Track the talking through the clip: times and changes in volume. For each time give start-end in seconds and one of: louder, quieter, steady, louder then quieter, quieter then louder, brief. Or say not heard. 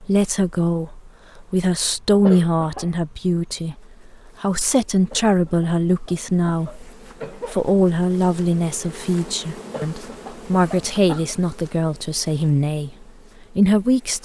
0.0-14.2 steady.